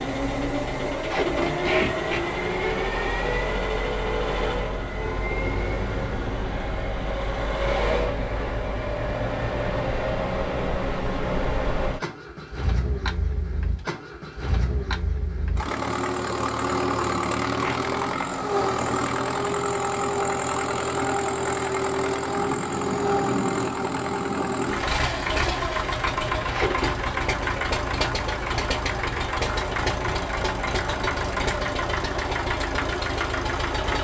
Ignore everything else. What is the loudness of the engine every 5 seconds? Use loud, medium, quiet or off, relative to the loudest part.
loud, loud, medium, loud, loud, loud, loud.